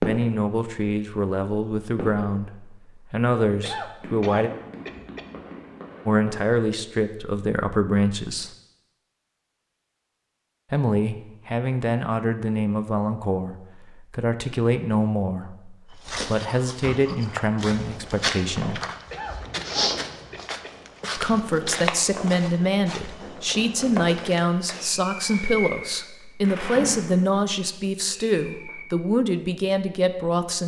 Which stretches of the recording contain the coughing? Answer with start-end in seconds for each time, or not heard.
3.6-5.2, 19.1-20.7.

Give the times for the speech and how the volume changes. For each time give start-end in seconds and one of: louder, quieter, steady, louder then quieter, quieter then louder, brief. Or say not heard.
0.0-4.5 steady
6.0-8.5 brief
10.7-18.8 steady
21.1-30.6 steady.